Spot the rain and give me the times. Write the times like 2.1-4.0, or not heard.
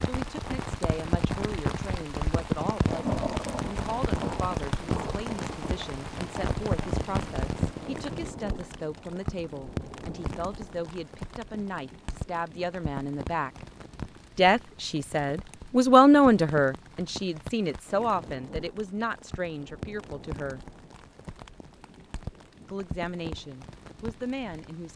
0.0-24.9.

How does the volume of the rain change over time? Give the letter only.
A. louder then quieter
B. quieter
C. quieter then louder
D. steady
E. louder
B.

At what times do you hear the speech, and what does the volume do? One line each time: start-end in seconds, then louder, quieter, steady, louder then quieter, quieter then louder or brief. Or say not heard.
0.0-13.7 steady
14.3-20.6 louder then quieter
22.7-24.9 brief.